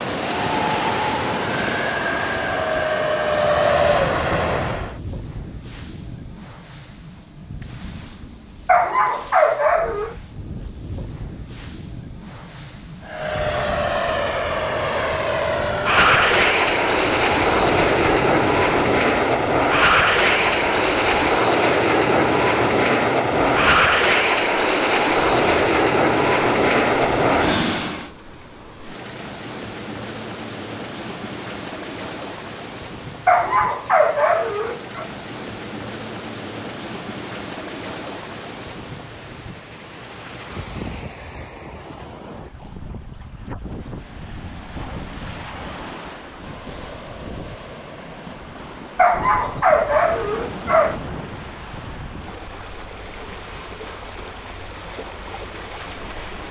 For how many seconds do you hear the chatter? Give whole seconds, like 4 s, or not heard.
not heard.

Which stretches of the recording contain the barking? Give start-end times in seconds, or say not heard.
8.7-10.2, 33.2-35.0, 49.0-51.0.